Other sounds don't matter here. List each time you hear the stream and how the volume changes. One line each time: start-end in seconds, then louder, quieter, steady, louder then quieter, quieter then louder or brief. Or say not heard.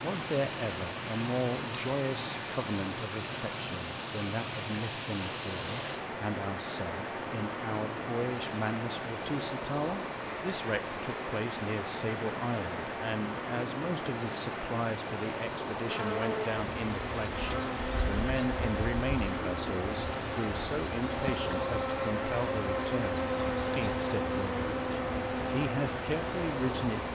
0.0-27.0 steady.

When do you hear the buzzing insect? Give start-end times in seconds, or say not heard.
15.8-27.0.